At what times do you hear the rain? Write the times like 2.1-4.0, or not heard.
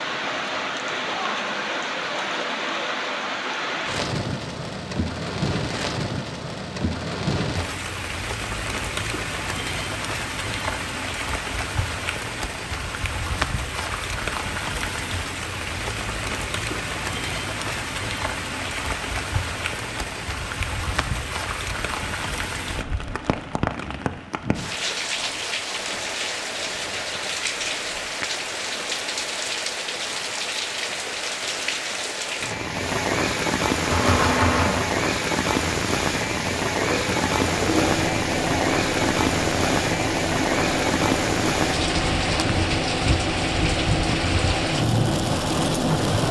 0.0-46.2.